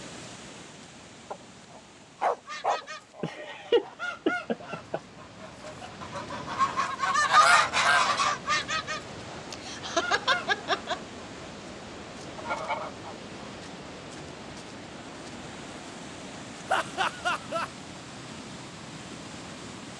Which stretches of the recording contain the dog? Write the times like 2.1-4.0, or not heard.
1.3-3.3.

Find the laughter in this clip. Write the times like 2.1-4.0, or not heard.
3.2-5.0, 9.5-10.9, 16.6-17.7.